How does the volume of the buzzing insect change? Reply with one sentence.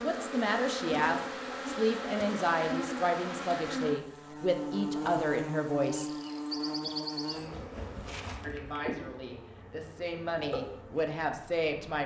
The loudness of the buzzing insect goes down.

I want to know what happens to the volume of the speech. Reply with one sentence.
The loudness of the speech goes down, then up.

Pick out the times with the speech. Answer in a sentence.
You can hear the speech from 0.0 to 6.1 s and from 8.4 to 12.0 s.